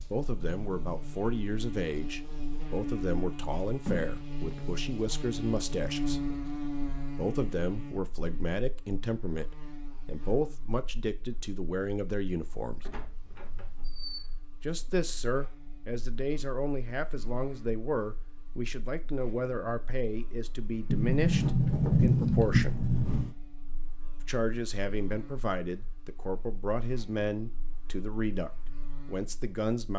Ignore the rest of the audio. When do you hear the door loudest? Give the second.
22 s.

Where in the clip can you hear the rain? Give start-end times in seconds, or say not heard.
not heard.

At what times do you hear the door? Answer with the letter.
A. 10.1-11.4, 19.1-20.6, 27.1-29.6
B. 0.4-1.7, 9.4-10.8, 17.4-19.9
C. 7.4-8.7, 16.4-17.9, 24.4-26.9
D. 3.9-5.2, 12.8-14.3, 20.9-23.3
D.